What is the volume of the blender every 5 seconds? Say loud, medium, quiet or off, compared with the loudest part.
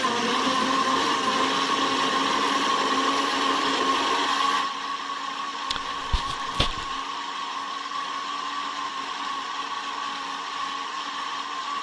loud, medium, medium.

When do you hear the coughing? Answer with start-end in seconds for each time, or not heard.
5.7-7.0.